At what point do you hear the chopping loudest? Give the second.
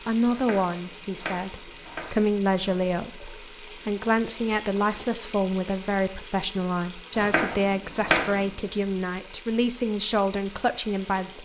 8 s.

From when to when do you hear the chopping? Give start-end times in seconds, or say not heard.
0.3-2.9, 7.2-8.4.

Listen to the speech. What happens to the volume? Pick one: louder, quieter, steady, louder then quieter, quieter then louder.
steady.